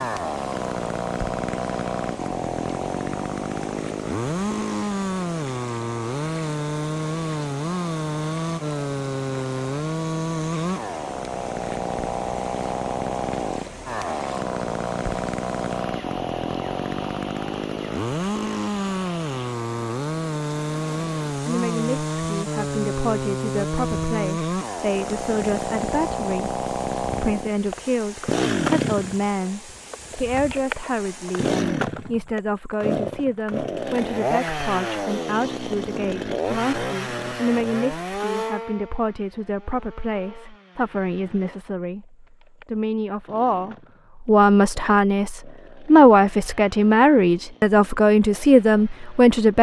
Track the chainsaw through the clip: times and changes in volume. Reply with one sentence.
The chainsaw can be heard from 0.0 to 49.5 s, getting quieter.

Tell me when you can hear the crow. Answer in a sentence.
The crow can't be heard in this clip.